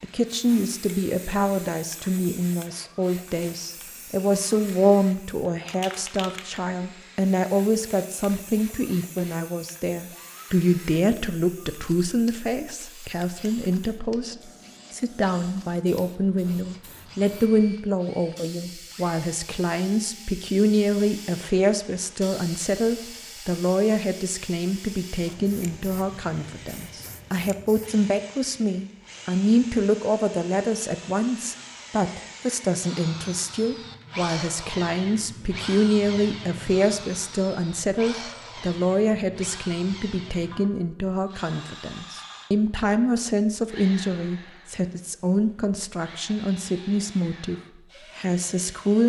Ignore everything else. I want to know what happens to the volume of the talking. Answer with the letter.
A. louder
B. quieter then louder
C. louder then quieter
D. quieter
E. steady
E.